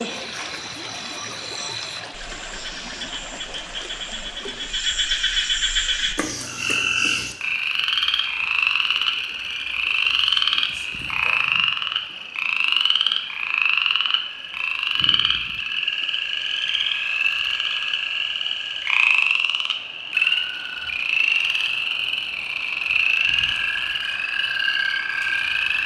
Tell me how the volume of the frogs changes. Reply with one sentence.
The volume of the frogs goes up.